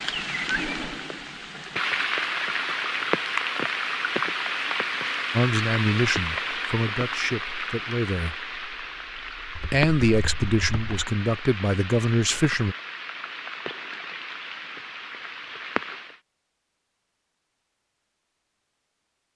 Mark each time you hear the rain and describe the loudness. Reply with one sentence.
The rain can be heard from 0.0 to 16.2 s, getting quieter.